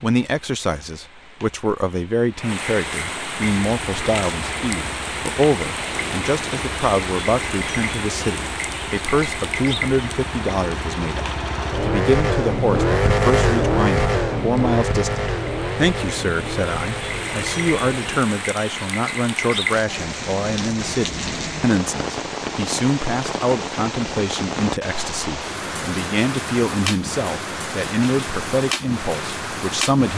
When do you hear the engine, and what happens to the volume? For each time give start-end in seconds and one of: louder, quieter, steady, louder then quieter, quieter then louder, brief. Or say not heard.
3.6-18.2 louder then quieter.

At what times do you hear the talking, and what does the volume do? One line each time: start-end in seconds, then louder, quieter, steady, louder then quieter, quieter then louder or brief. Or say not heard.
0.0-30.1 steady.